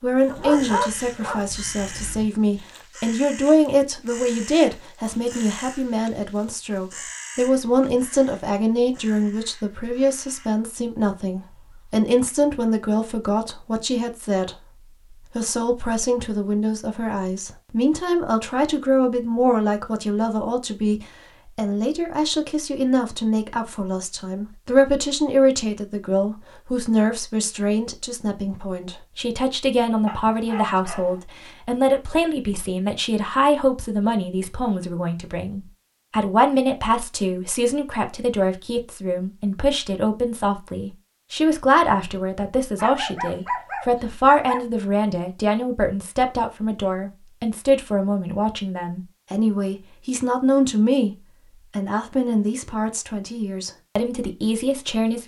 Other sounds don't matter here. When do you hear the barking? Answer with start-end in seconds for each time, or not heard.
0.3-2.2, 30.1-31.2, 42.8-44.6.